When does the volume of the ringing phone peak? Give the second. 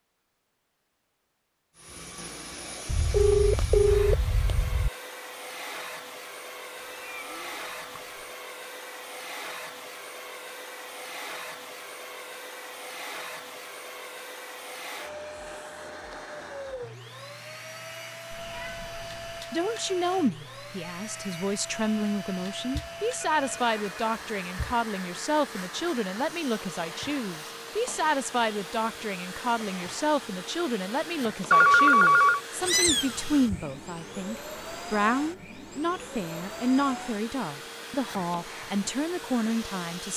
32 s.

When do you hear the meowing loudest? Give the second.
33 s.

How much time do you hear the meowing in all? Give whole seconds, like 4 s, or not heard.
4 s.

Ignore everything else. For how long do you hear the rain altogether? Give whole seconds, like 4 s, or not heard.
not heard.